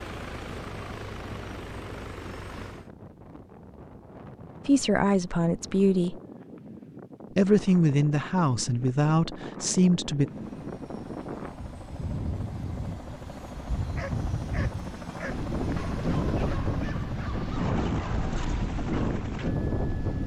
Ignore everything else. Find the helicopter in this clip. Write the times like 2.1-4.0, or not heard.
0.0-2.9, 10.2-20.2.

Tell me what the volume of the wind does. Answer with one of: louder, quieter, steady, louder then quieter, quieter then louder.
louder.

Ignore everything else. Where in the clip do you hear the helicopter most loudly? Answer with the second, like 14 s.
18 s.